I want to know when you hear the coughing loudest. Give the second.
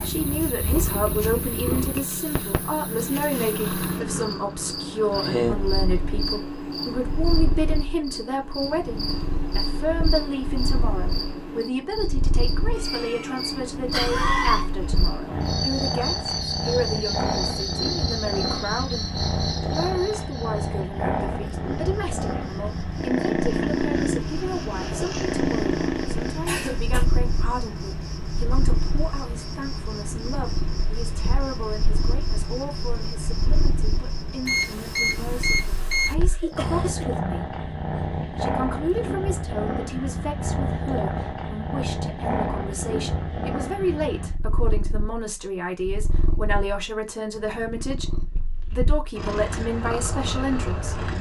14 s.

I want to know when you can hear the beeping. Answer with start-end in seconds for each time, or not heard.
34.5-36.1.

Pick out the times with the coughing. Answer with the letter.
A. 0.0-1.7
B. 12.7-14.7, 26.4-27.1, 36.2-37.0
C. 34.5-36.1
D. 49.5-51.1
B.